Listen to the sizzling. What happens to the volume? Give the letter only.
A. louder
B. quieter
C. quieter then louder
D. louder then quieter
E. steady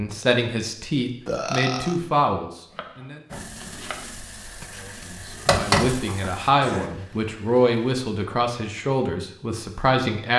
D.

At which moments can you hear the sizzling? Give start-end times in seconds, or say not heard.
3.3-8.0.